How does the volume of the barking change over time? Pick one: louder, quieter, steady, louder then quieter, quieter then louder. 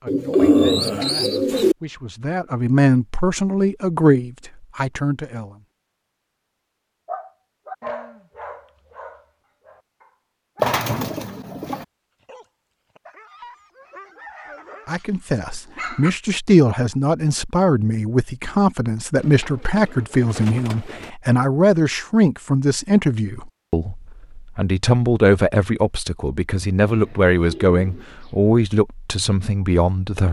quieter then louder.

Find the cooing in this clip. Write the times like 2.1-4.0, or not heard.
0.1-1.8, 10.6-11.8, 19.1-21.1, 26.9-28.4.